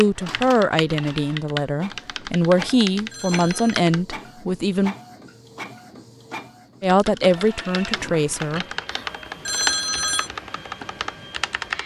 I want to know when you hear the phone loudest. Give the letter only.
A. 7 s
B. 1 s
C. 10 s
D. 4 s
C.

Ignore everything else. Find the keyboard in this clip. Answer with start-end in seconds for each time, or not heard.
0.0-4.0, 6.8-11.8.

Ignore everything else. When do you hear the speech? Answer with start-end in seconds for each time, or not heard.
0.0-5.0, 6.8-8.7.